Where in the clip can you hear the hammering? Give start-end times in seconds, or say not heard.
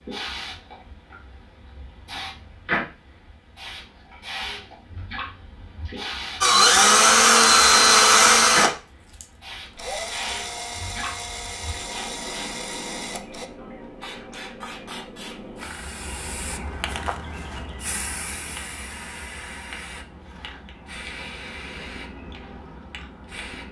not heard.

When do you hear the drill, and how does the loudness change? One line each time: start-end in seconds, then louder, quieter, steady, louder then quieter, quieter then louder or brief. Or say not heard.
6.4-13.5 quieter.